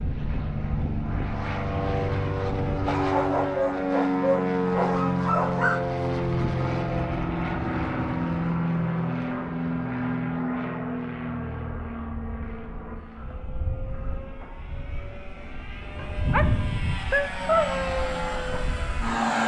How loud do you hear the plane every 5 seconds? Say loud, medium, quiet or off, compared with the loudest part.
loud, loud, medium, loud.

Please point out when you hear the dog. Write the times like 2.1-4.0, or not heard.
2.9-5.8, 15.9-16.5, 17.1-17.8.